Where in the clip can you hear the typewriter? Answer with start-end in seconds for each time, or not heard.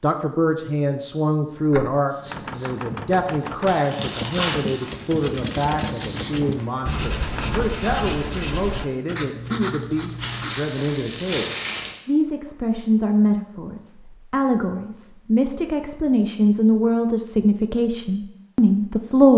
1.6-7.7.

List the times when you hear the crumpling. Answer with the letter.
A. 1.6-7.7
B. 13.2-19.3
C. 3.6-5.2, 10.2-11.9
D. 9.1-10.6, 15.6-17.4
C.